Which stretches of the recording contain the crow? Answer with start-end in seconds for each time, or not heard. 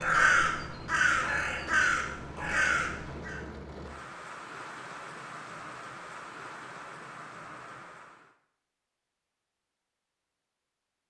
0.0-3.4.